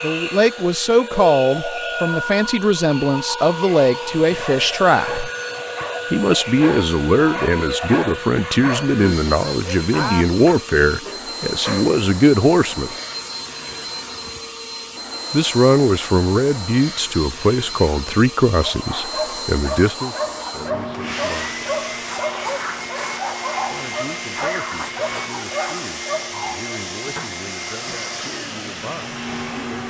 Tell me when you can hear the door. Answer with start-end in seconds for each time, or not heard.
not heard.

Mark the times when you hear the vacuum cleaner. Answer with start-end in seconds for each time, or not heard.
0.0-29.8.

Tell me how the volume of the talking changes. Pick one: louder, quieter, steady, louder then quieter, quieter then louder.
quieter.